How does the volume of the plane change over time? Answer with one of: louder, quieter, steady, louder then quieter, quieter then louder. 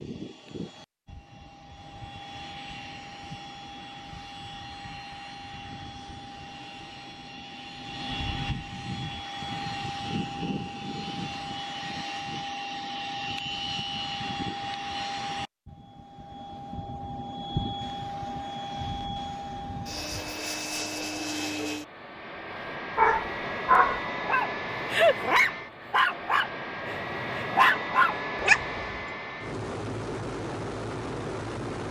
louder.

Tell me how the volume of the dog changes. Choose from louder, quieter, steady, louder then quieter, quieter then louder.
quieter then louder.